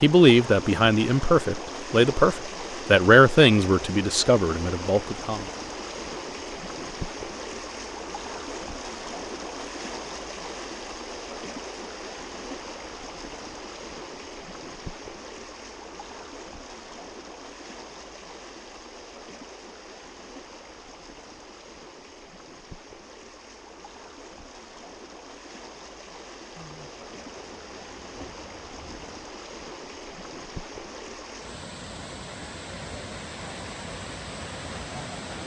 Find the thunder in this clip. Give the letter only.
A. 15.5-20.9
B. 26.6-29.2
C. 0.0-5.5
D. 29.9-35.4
B.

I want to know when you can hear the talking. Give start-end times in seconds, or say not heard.
0.0-5.5.